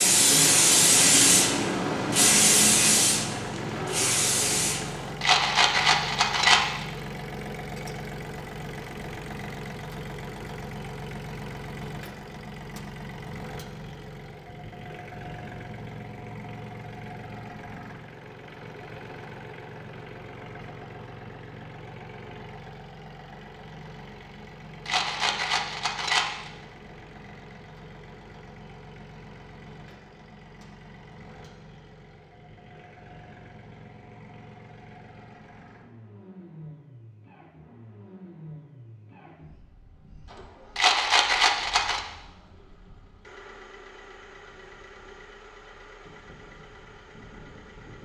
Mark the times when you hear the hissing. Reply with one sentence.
The hissing can be heard from 0.0 to 5.1 s.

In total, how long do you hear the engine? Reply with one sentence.
The engine can be heard for 48 seconds in total.